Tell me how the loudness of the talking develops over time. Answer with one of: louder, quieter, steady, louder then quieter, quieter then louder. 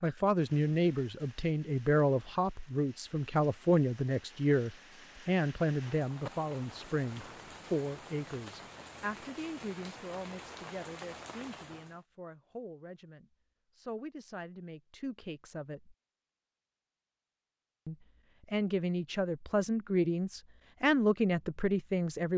quieter then louder.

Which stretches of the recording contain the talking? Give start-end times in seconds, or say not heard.
0.0-15.9, 17.9-22.3.